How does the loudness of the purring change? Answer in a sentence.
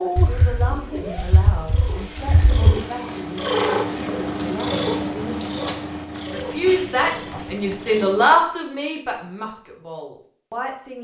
The volume of the purring goes up, then down.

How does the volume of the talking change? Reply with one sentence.
The loudness of the talking goes up, then down.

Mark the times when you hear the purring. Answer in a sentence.
The purring can be heard from 0.0 to 8.3 s.